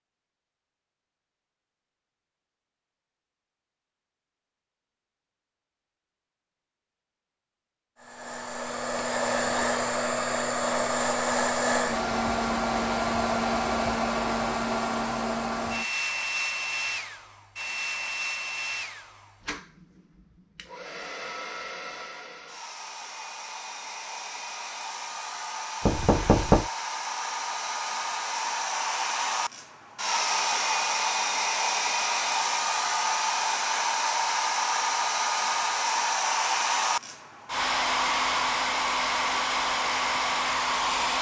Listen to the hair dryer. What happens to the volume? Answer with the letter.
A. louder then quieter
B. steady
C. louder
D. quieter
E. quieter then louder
E.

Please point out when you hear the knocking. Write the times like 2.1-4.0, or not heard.
25.9-26.6.